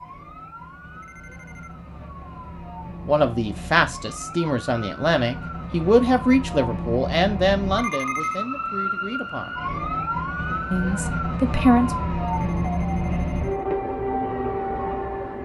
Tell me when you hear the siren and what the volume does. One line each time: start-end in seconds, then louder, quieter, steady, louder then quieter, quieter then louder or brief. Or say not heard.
0.0-15.4 louder.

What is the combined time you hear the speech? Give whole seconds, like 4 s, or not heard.
8 s.